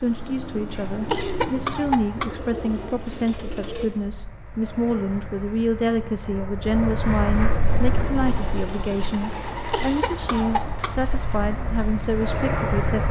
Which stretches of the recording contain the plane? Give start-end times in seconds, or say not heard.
0.0-13.0.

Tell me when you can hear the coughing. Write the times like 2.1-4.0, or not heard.
0.7-2.4, 9.3-11.2.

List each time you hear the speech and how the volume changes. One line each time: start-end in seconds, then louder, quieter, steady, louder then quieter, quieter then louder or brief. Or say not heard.
0.0-13.0 steady.